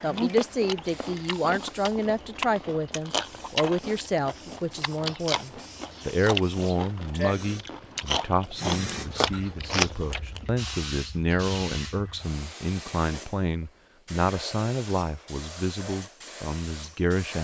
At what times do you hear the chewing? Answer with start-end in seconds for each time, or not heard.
0.1-10.4.